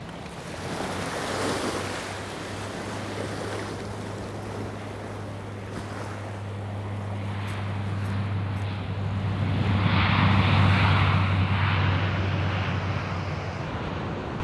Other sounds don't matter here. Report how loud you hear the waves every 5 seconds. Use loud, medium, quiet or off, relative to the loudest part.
loud, medium, loud.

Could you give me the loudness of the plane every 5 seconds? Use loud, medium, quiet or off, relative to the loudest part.
quiet, medium, loud.